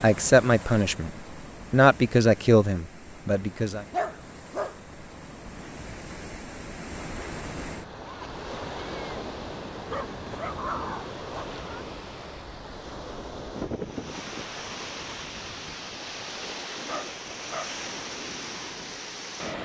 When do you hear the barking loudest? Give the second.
4 s.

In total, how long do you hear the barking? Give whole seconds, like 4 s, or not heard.
3 s.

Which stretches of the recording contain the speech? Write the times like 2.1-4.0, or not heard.
0.0-3.9.